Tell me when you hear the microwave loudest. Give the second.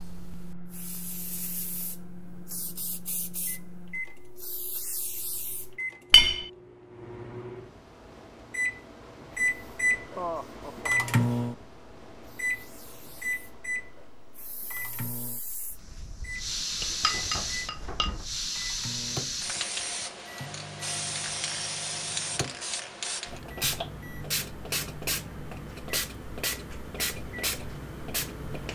11 s.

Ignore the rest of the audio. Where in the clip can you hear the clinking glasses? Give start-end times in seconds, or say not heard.
6.1-6.5, 16.8-18.2.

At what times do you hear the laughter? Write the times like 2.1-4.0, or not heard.
10.2-11.1.